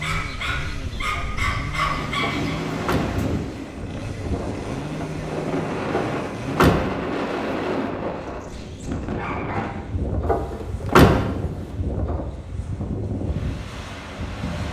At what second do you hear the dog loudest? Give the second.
2 s.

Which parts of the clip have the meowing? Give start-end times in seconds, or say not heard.
not heard.